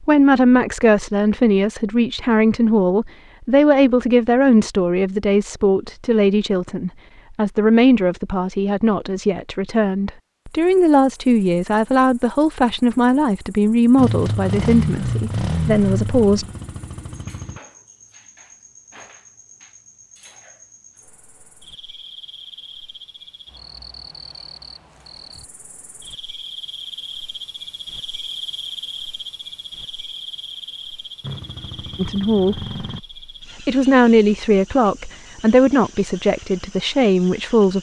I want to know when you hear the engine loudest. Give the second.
15 s.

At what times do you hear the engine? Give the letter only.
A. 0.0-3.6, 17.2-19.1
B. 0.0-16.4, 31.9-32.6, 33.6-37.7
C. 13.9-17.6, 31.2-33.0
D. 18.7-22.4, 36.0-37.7
C.